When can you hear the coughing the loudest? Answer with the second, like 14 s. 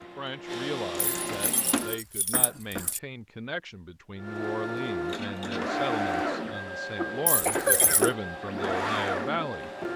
8 s.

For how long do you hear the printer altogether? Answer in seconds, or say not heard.
8 s.